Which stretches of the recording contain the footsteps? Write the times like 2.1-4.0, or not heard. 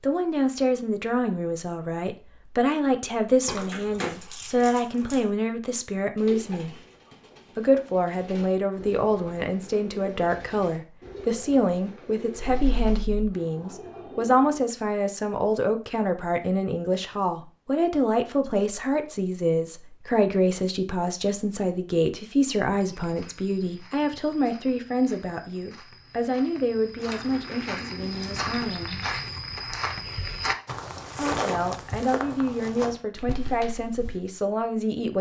22.8-34.2.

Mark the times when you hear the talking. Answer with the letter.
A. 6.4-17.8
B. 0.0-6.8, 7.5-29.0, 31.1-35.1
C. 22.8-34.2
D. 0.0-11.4
B.